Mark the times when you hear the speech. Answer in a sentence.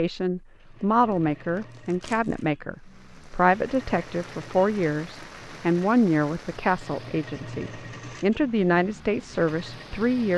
You can hear the speech from 0.0 to 10.3 s.